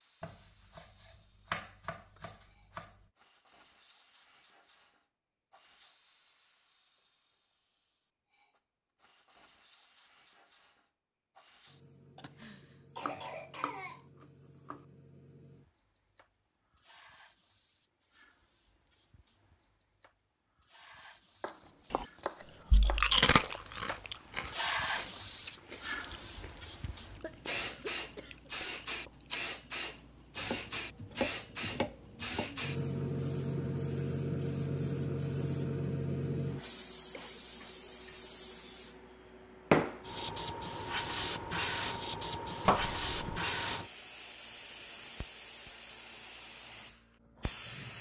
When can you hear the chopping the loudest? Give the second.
43 s.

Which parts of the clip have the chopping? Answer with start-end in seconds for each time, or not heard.
0.2-3.0, 13.1-14.8, 21.4-23.6, 30.4-32.7, 42.6-43.4.